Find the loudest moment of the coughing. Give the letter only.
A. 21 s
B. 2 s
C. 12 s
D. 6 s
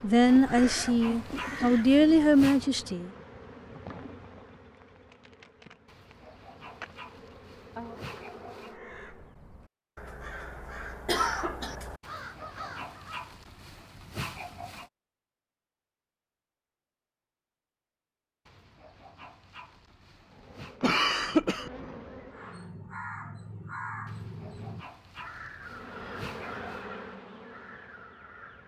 A.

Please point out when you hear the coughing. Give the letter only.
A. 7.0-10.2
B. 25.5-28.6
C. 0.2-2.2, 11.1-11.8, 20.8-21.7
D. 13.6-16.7
C.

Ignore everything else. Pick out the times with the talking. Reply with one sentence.
You can hear the talking from 0.0 to 3.1 s.